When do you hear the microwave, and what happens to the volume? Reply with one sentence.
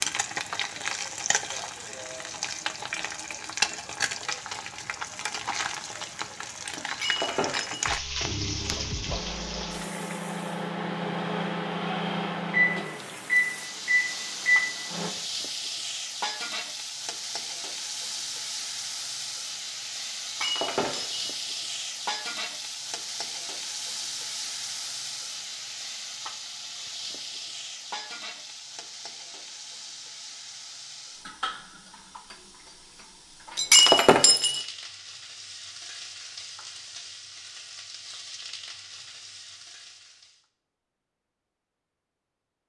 You can hear the microwave from 8.2 to 15.1 s, getting louder.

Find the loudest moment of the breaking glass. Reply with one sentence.
The loudest moment of the breaking glass is at 34 seconds.